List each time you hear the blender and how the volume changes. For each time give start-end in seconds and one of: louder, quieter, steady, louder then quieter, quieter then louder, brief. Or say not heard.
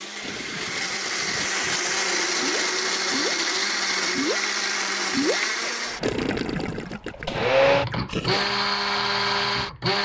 0.0-9.9 steady.